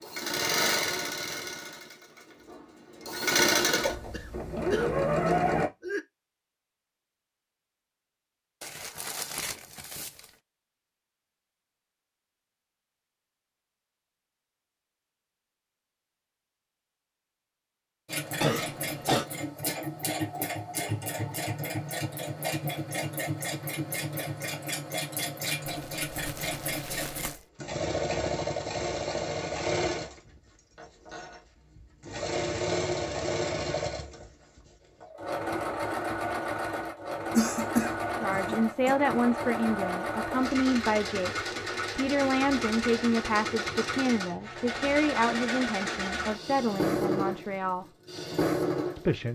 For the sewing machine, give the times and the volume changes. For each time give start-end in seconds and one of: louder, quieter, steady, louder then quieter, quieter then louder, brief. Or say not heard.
0.0-5.7 quieter then louder
18.1-49.3 steady.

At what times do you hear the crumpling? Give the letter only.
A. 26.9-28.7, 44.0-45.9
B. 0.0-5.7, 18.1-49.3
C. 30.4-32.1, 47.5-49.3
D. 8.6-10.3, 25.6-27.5
D.